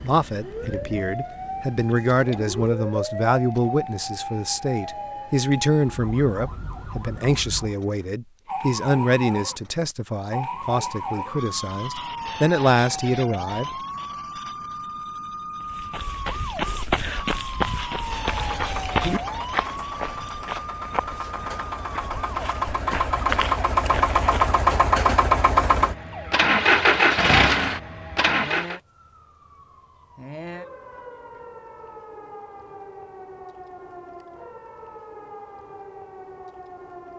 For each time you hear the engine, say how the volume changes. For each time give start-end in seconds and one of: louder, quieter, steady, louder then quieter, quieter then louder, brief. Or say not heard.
17.9-28.8 louder.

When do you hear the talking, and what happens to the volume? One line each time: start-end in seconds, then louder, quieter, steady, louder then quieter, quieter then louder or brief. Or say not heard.
0.0-13.8 steady.